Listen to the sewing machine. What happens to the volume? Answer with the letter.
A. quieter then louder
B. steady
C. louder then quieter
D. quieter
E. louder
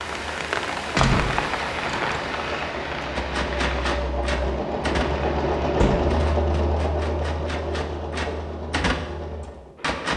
C.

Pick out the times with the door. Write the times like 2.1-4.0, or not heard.
0.9-2.3, 5.8-6.2.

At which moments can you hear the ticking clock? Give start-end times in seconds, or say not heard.
not heard.